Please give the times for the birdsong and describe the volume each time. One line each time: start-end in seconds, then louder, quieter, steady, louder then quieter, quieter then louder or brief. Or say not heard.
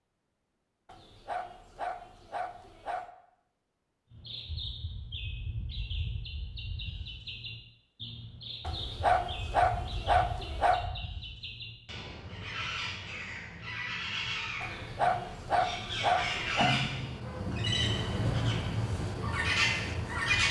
4.1-20.4 louder.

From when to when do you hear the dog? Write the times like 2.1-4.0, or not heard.
0.8-3.1, 8.7-10.8, 14.6-16.8.